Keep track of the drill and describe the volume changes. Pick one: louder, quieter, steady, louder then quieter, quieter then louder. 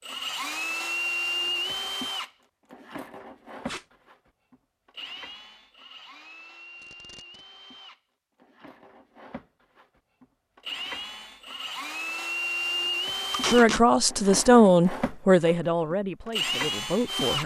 quieter then louder.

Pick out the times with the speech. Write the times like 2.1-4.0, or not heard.
13.5-17.4.